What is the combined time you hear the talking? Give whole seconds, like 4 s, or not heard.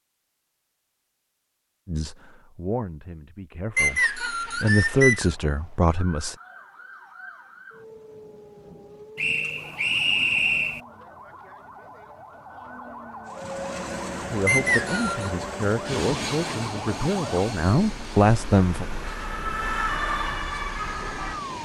9 s.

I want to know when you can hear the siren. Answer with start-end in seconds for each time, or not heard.
5.3-21.6.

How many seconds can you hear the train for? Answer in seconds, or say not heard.
8 s.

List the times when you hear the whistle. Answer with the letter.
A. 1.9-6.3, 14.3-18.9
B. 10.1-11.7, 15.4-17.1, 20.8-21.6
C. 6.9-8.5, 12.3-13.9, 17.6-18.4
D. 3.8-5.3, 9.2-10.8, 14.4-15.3
D.